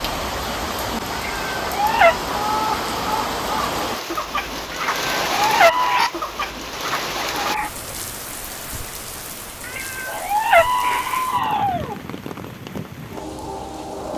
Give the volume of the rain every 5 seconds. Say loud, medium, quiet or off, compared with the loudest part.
loud, loud, medium.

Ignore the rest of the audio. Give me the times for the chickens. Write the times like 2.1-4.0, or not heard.
2.0-7.7.